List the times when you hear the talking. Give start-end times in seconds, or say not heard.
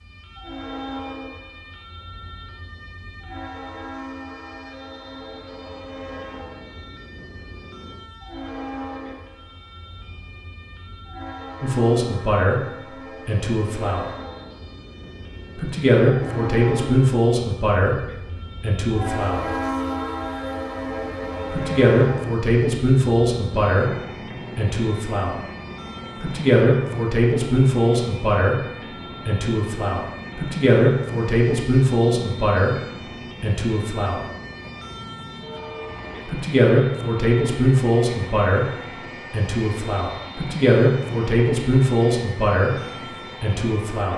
11.6-14.1, 15.6-19.4, 21.5-25.4, 26.2-34.2, 36.2-44.1.